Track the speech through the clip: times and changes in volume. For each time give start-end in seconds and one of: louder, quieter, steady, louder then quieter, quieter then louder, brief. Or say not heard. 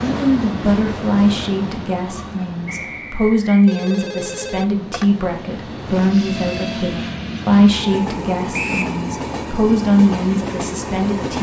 0.0-11.3 steady.